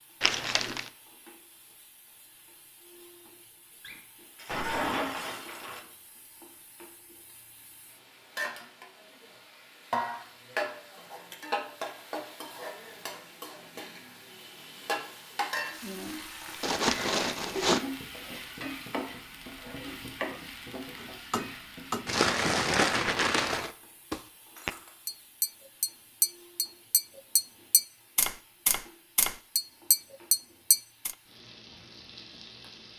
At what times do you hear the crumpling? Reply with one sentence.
The crumpling can be heard from 0.2 to 0.8 s, from 16.6 to 17.9 s and from 22.1 to 23.7 s.